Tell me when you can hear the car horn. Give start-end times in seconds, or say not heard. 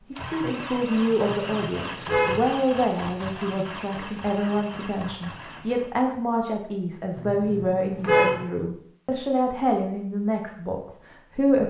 1.2-2.5, 7.2-8.4.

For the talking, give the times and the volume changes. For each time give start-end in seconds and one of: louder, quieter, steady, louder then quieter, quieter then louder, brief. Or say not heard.
0.1-11.6 steady.